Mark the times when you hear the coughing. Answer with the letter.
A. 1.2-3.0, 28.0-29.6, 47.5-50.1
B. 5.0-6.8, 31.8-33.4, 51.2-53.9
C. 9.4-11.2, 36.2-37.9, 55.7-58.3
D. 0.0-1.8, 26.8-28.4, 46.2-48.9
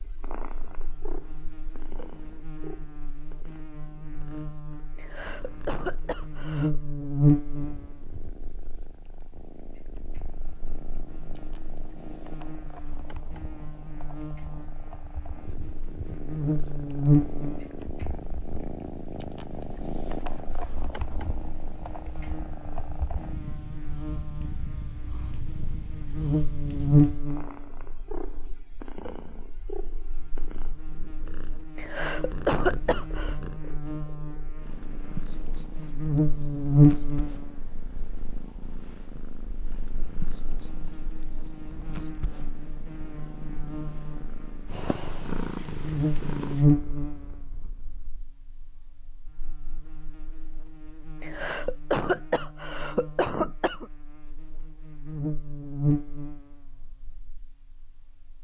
B.